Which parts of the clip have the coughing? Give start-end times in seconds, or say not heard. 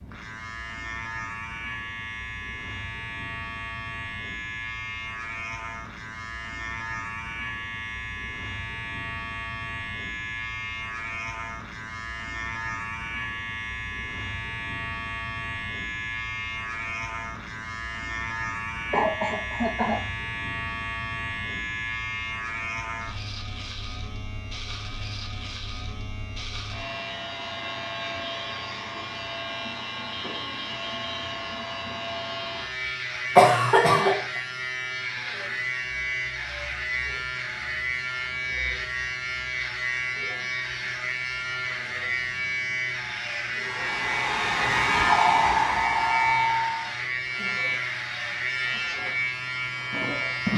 18.9-20.0, 33.4-34.2.